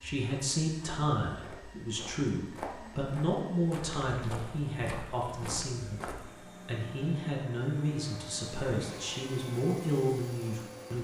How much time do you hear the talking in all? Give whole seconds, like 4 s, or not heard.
11 s.